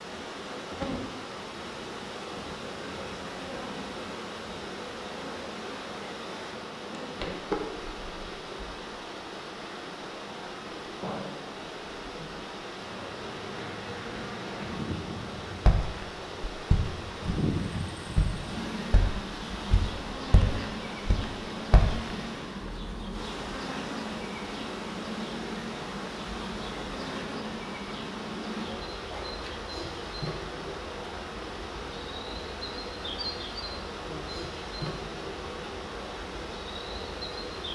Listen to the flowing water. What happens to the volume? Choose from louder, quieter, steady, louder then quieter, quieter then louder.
steady.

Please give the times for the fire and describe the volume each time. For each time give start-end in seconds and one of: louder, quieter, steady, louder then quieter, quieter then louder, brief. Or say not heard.
not heard.